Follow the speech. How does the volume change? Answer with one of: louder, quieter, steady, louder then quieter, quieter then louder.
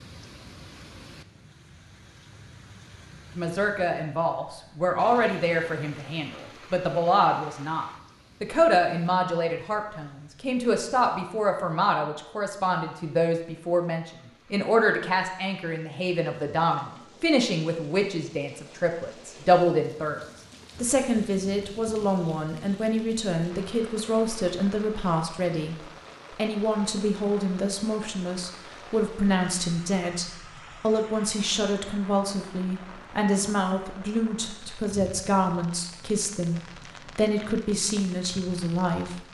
steady.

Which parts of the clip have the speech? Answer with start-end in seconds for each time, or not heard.
3.4-39.2.